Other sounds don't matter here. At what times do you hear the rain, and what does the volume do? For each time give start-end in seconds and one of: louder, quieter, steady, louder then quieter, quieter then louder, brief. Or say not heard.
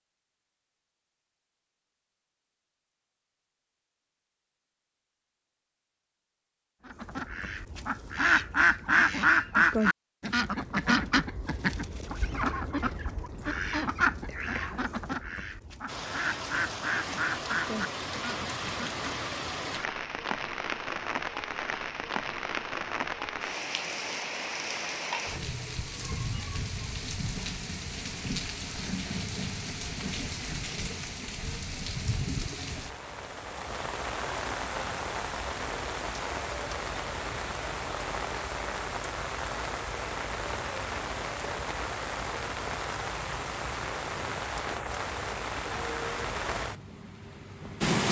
15.8-48.0 steady.